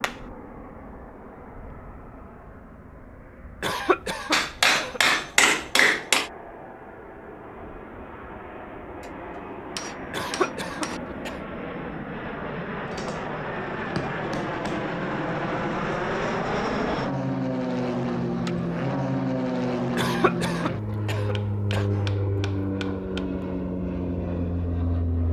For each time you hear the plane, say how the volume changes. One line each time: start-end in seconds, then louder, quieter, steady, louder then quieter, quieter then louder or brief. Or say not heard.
0.0-25.2 louder.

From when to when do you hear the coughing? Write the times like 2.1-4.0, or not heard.
3.6-5.0, 10.1-11.4, 19.9-22.0.